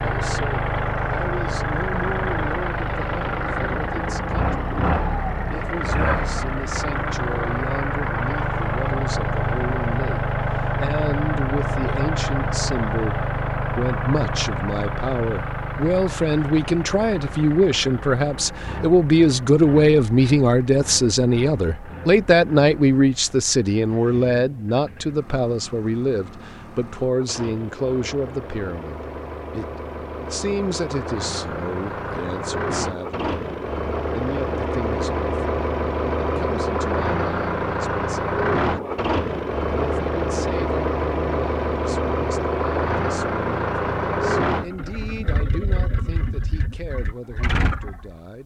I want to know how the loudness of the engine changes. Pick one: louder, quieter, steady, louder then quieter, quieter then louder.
quieter then louder.